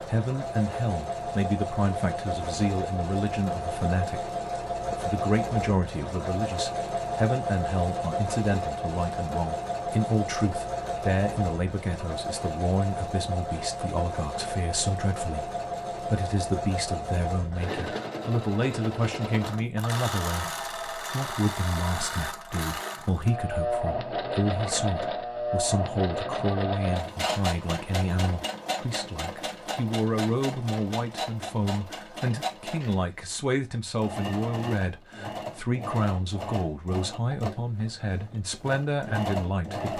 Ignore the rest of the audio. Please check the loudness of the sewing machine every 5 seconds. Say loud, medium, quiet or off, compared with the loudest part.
loud, loud, loud, loud, loud, loud, medium, medium.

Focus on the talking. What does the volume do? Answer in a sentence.
The volume of the talking stays about the same.